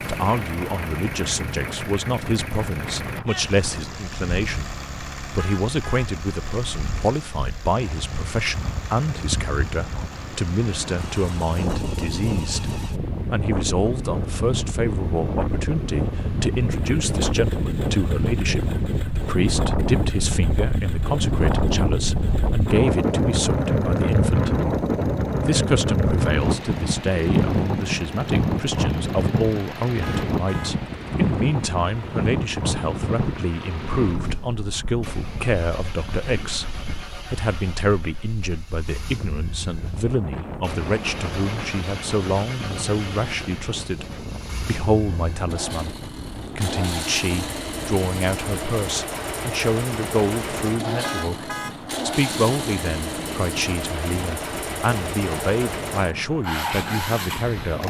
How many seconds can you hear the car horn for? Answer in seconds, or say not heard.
2 s.